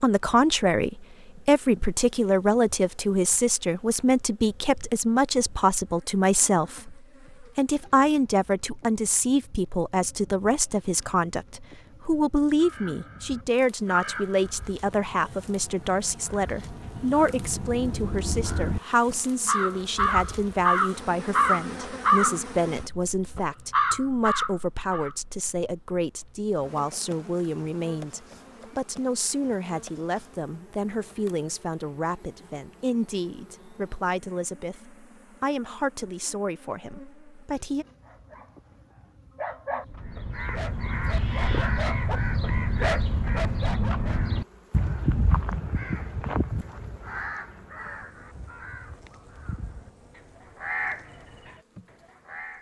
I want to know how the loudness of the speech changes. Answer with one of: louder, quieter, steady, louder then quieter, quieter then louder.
quieter.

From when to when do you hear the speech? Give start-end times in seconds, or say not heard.
0.0-37.9.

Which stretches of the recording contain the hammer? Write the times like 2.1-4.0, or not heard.
not heard.